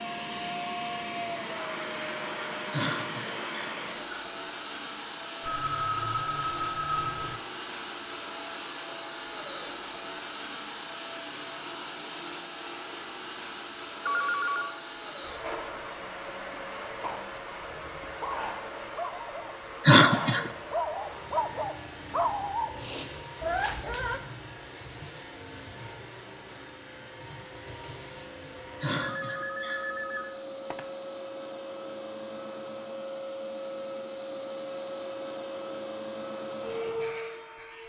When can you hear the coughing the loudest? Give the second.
20 s.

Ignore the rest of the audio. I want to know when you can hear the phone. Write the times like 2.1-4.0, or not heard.
5.5-7.4, 14.1-14.8, 29.1-30.9.